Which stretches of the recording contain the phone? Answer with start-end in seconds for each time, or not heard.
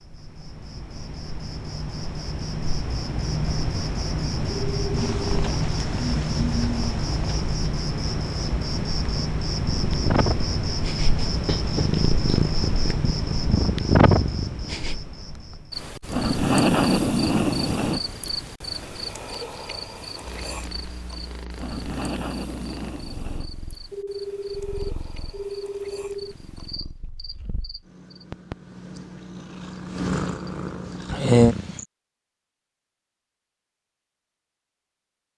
4.5-5.2, 23.9-26.4.